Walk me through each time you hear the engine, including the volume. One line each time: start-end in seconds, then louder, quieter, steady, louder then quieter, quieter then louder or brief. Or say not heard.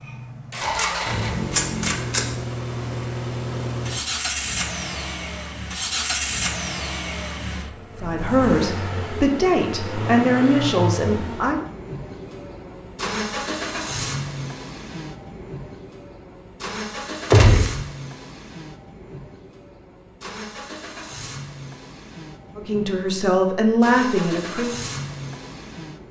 0.0-26.0 quieter.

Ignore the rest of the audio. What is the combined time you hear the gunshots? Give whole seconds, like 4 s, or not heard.
2 s.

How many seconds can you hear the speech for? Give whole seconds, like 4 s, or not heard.
6 s.